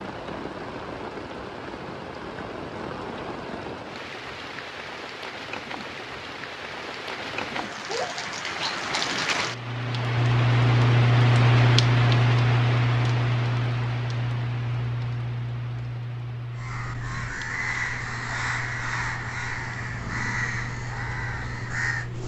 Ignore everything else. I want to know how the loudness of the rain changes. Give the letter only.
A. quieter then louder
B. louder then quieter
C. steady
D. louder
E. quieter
B.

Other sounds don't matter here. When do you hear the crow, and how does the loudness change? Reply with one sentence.
The crow can be heard from 16.6 to 22.2 s, at a steady volume.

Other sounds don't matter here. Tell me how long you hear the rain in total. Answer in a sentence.
The rain can be heard for 22 seconds in total.